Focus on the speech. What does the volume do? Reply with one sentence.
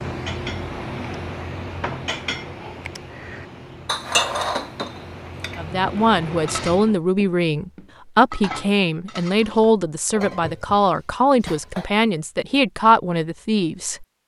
The volume of the speech stays about the same.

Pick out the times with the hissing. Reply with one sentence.
The hissing can be heard from 0.0 to 7.0 s.